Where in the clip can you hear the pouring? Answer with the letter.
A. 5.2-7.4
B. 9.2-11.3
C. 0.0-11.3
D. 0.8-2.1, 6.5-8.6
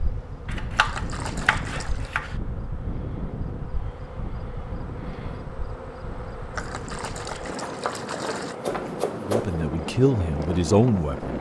D.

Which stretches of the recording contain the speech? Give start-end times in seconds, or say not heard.
9.2-11.3.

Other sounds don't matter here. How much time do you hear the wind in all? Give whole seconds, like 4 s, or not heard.
11 s.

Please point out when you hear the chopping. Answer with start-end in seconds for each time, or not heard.
0.5-2.4, 7.6-9.6.